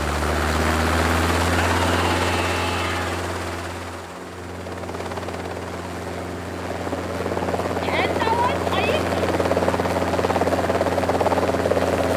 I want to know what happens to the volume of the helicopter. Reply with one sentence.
The volume of the helicopter goes down, then up.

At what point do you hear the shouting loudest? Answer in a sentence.
The volume of the shouting peaks at 8 seconds.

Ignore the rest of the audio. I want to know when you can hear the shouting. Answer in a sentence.
The shouting can be heard from 1.6 to 3.2 s and from 7.8 to 9.1 s.